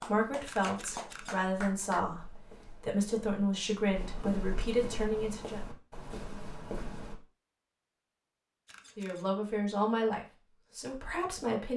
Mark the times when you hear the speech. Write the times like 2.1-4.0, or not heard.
0.0-5.6, 8.9-11.7.